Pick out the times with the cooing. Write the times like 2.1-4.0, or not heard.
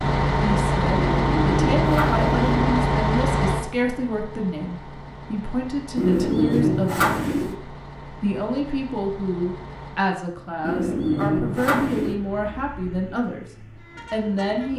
0.9-2.8, 6.0-7.5, 10.6-12.2.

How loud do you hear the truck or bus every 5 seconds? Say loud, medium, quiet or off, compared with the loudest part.
loud, quiet, quiet.